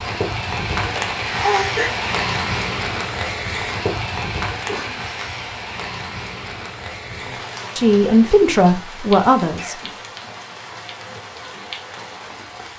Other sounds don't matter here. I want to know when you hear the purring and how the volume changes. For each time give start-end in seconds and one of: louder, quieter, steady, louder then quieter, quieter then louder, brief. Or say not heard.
not heard.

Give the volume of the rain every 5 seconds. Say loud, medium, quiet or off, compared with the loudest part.
loud, medium, medium.